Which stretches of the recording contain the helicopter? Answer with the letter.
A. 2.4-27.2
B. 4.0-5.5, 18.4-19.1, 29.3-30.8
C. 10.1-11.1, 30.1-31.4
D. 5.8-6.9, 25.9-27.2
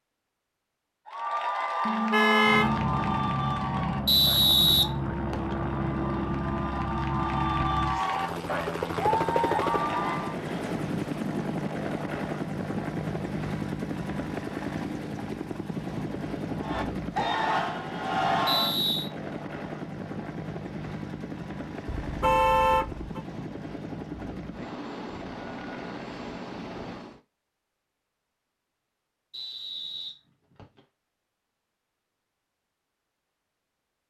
A.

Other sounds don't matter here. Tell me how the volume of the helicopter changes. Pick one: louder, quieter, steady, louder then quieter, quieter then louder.
quieter.